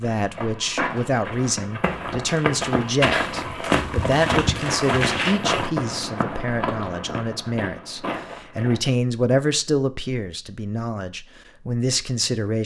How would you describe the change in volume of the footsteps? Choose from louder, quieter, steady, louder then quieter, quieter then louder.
louder then quieter.